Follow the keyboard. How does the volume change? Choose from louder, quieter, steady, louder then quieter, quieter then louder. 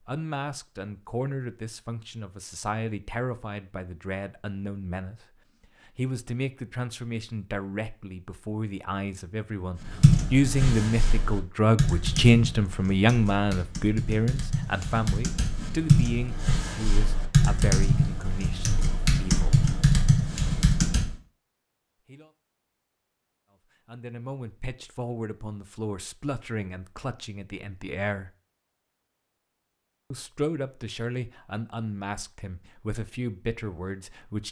quieter then louder.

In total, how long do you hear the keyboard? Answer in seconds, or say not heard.
11 s.